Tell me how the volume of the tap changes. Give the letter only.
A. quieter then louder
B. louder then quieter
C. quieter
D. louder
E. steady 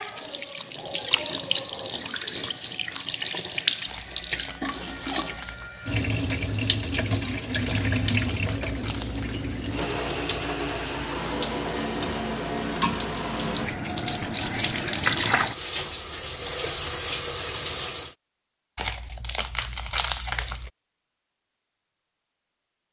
E.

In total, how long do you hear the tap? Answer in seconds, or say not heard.
18 s.